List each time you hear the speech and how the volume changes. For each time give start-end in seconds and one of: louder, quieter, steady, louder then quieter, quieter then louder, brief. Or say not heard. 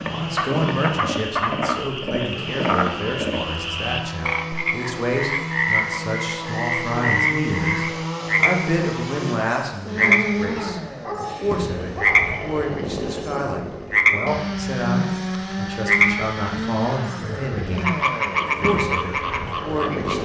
0.0-20.2 steady.